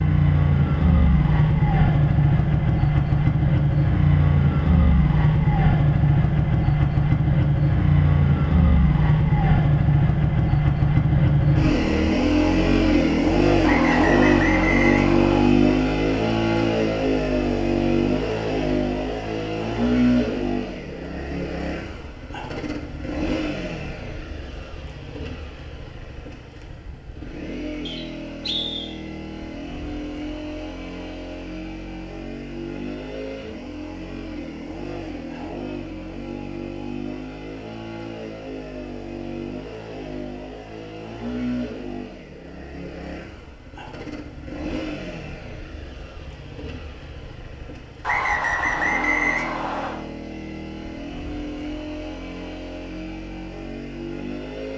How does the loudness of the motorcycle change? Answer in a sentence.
The volume of the motorcycle goes down.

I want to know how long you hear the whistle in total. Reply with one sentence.
You can hear the whistle for 5 seconds altogether.